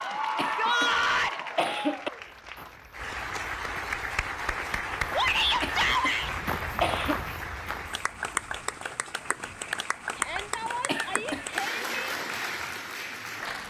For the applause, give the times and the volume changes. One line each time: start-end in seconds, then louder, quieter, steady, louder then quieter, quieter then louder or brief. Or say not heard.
0.0-13.6 steady.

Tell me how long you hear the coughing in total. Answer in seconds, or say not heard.
5 s.